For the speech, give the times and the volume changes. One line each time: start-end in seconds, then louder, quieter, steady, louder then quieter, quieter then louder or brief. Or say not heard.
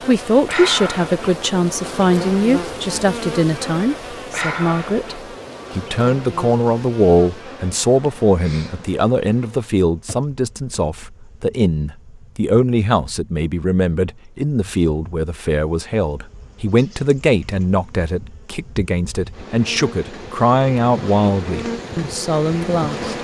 0.1-23.1 steady.